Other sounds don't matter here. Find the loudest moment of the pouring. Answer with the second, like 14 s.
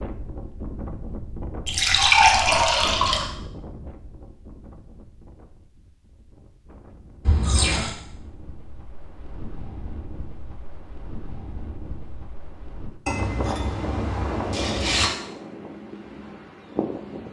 2 s.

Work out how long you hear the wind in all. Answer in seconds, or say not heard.
17 s.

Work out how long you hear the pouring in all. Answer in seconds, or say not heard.
4 s.